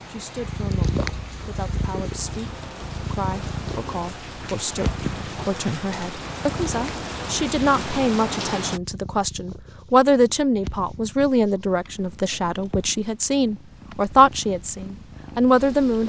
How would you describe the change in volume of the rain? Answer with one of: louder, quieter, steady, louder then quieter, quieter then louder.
louder.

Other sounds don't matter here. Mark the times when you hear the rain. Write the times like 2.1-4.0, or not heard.
0.0-8.8.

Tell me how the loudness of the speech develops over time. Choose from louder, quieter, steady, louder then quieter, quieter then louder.
louder.